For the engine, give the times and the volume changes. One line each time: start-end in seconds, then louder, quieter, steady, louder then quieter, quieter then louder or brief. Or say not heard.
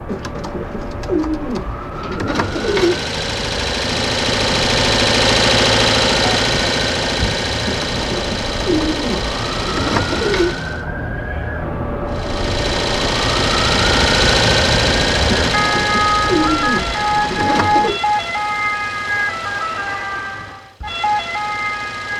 2.2-10.8 louder then quieter
12.1-22.1 quieter.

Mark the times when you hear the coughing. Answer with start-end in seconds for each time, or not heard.
not heard.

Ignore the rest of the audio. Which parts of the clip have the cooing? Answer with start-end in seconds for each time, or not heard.
0.1-3.0, 7.7-10.6, 15.5-18.0.